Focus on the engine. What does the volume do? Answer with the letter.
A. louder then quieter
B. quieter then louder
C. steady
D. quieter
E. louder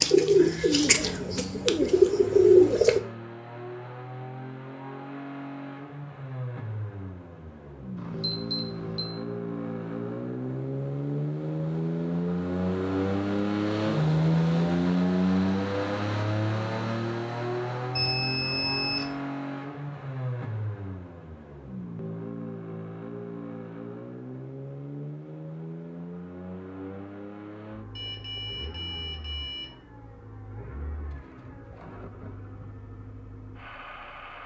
A.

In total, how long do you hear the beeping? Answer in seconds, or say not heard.
4 s.